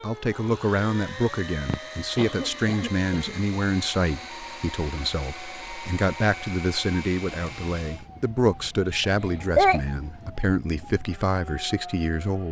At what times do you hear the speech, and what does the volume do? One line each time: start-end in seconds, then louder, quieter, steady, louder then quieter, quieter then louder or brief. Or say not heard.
0.0-12.4 steady.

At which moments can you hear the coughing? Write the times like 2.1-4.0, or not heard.
1.6-3.4, 9.0-9.8.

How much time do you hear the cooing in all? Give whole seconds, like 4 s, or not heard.
not heard.